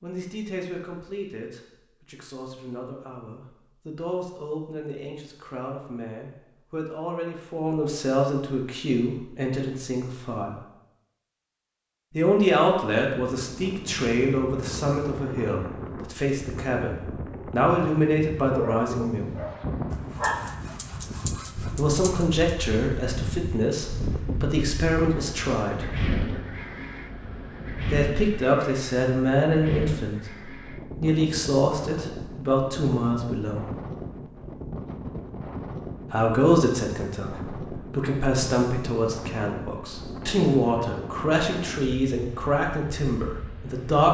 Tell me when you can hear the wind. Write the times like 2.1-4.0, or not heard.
13.1-44.0.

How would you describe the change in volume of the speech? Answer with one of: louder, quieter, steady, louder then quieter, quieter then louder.
louder.